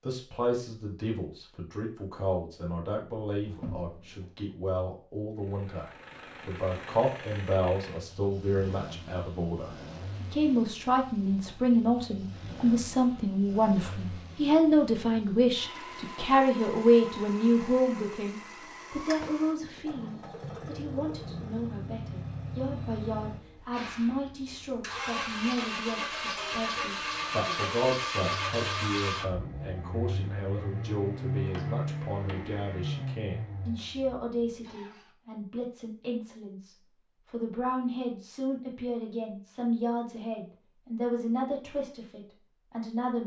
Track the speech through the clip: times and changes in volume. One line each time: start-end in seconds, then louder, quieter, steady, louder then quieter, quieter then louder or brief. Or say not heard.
0.0-43.2 louder then quieter.